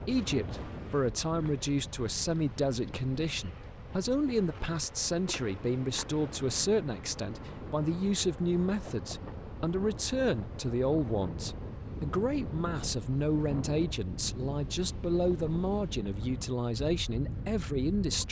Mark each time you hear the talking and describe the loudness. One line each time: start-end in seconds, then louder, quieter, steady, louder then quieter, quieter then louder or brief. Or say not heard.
0.1-18.2 steady.